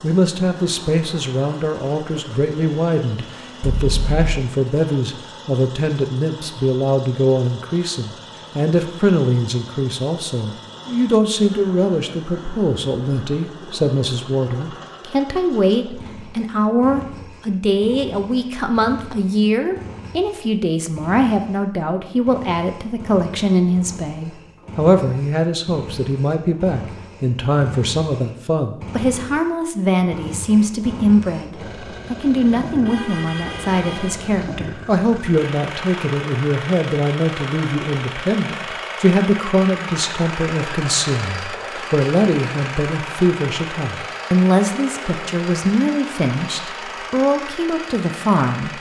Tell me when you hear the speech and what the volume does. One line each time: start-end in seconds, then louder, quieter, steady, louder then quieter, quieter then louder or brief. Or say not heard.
0.0-48.7 steady.